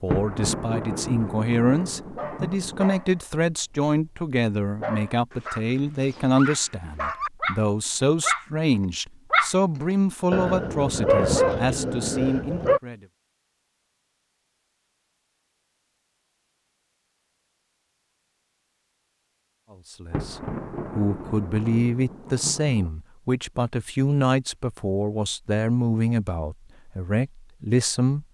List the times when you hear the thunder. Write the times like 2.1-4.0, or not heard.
0.1-2.9, 20.1-22.9.